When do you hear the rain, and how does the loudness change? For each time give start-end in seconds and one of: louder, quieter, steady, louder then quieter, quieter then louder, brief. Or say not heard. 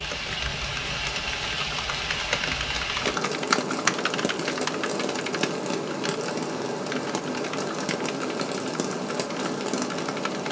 0.0-10.4 steady.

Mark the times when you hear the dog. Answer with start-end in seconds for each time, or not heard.
not heard.